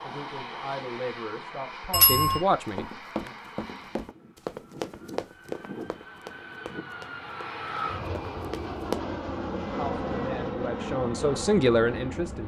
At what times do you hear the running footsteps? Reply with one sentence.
You can hear the running footsteps from 2.6 to 9.0 s.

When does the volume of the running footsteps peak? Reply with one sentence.
The loudest moment of the running footsteps is at 9 seconds.